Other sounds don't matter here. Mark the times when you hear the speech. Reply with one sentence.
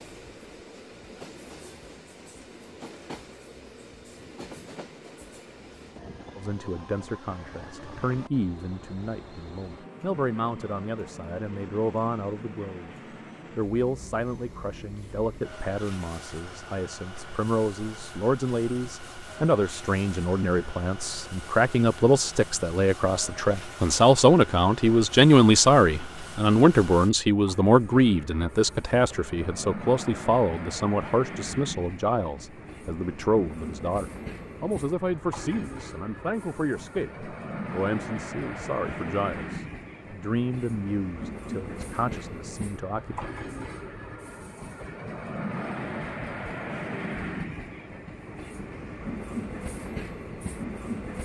The speech can be heard from 6.3 to 12.9 s and from 13.6 to 43.2 s.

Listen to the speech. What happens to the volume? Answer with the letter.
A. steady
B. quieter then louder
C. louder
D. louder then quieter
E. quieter
D.